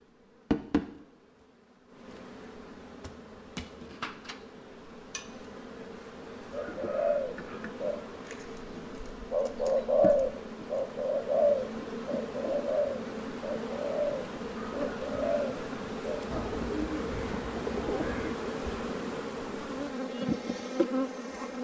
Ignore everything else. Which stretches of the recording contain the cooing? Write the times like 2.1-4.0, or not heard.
6.5-18.4.